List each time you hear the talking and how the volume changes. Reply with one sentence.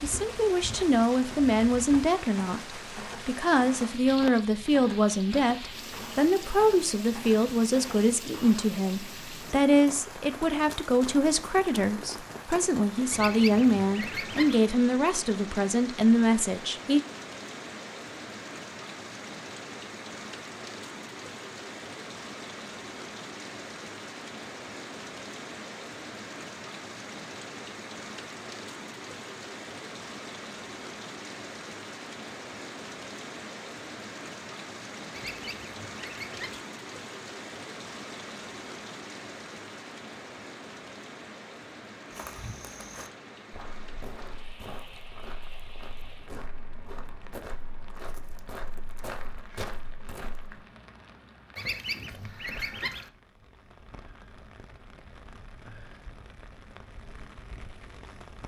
The talking can be heard from 0.0 to 17.0 s, at a steady volume.